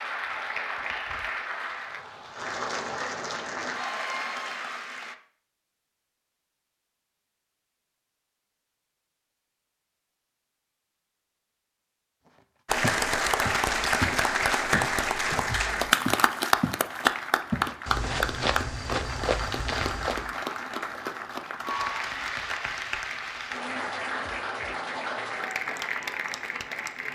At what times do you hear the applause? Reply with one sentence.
You can hear the applause from 0.0 to 5.2 s and from 12.7 to 27.1 s.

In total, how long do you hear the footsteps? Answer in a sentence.
The footsteps can be heard for 7 seconds in total.